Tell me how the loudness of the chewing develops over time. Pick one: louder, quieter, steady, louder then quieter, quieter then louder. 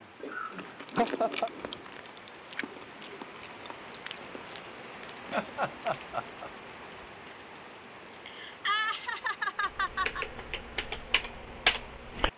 quieter.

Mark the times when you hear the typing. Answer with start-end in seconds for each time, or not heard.
9.6-12.3.